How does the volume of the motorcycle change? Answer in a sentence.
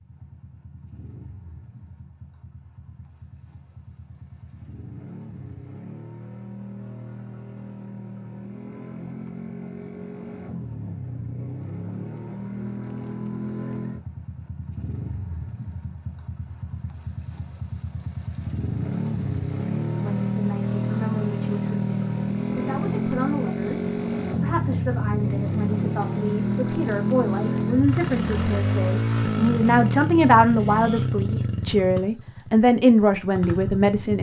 The volume of the motorcycle goes up.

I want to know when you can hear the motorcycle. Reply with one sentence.
The motorcycle can be heard from 0.0 to 34.1 s.